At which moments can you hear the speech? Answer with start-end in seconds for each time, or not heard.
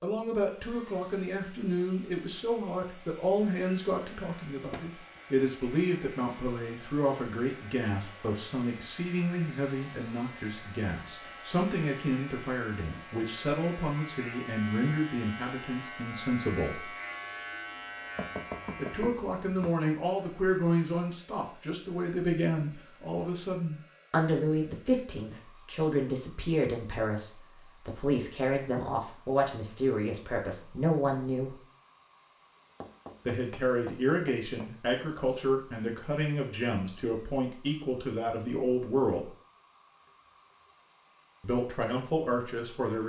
0.0-16.9, 18.8-31.6, 33.2-39.2, 41.4-43.0.